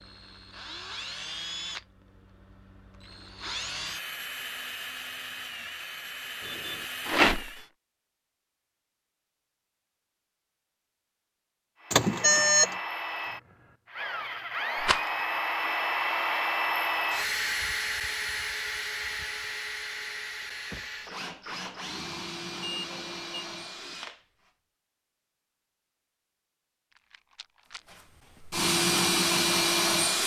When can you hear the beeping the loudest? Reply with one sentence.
The volume of the beeping peaks at 12 seconds.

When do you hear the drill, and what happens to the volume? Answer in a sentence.
You can hear the drill from 0.0 to 7.7 s, getting quieter then louder; from 11.8 to 24.5 s, getting louder then quieter; and briefly from 27.9 to 30.2 s.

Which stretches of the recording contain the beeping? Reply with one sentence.
The beeping can be heard from 6.4 to 6.8 s, from 11.9 to 12.7 s and from 22.6 to 23.4 s.